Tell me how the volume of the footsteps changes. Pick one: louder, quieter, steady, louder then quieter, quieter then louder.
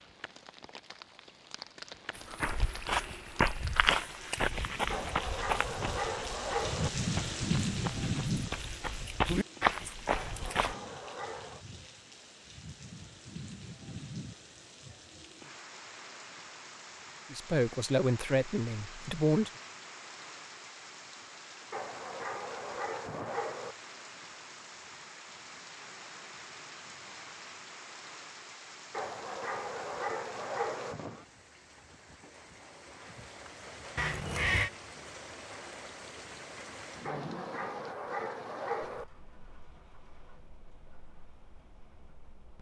quieter then louder.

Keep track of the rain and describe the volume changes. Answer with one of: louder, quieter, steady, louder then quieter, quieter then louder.
quieter.